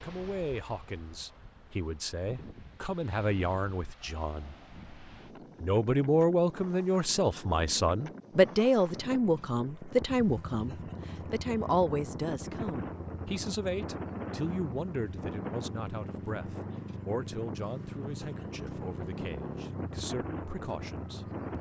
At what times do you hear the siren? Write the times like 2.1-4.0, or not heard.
not heard.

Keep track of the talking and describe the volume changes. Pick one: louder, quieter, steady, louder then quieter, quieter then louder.
louder then quieter.